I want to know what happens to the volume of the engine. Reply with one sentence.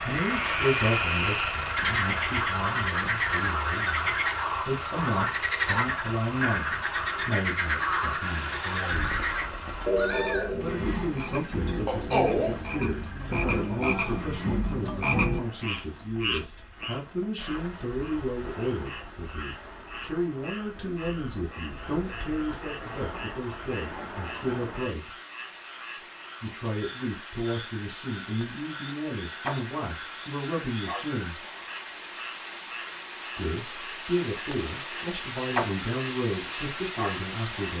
The loudness of the engine goes down.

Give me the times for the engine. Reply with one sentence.
You can hear the engine from 0.0 to 14.8 s.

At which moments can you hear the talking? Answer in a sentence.
You can hear the talking from 0.0 to 9.2 s, from 10.6 to 25.1 s, from 26.4 to 31.4 s and from 33.4 to 37.7 s.